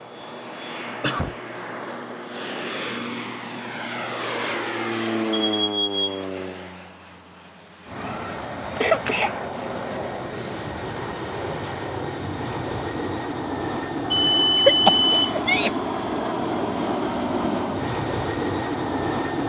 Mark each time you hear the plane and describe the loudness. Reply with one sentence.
You can hear the plane from 0.0 to 19.4 s, getting louder.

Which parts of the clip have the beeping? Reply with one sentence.
You can hear the beeping from 5.3 to 6.2 s and from 14.1 to 15.3 s.